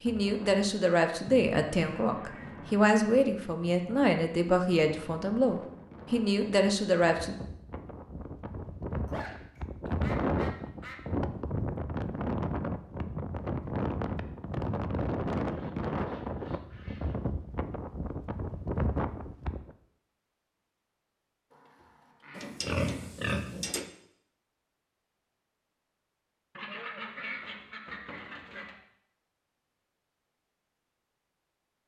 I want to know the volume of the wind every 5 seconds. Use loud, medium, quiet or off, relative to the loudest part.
quiet, medium, loud, loud, off, off, off.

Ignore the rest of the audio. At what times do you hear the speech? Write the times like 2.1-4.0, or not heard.
0.0-7.3.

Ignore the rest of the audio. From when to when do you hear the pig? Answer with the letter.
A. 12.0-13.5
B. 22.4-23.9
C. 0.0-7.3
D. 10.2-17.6
B.